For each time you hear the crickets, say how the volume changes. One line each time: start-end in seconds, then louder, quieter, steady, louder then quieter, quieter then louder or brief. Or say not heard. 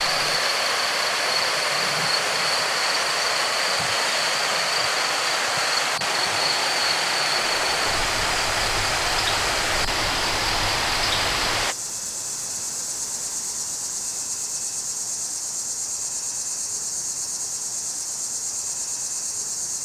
0.0-19.7 steady.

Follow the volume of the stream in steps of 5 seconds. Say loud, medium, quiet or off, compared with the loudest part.
loud, loud, loud, off.